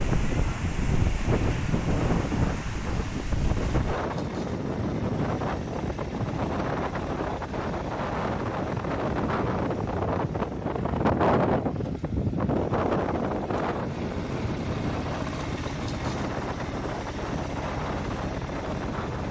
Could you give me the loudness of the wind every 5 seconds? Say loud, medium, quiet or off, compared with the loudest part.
loud, loud, loud, medium.